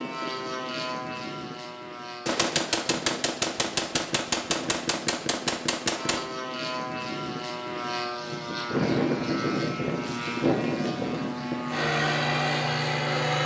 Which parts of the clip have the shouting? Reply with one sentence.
You can't hear the shouting here.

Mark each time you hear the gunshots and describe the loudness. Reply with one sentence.
You can hear the gunshots from 2.2 to 6.2 s, at a steady volume.